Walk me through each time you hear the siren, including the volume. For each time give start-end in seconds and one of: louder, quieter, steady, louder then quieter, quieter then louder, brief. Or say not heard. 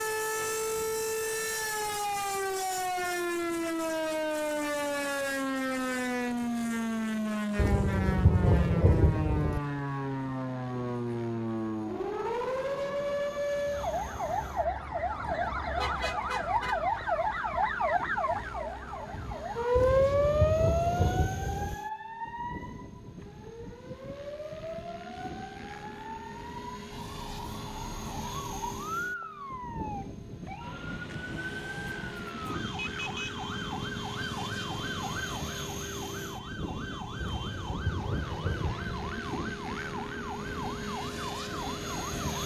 0.0-42.4 quieter.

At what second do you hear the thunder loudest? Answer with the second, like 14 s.
8 s.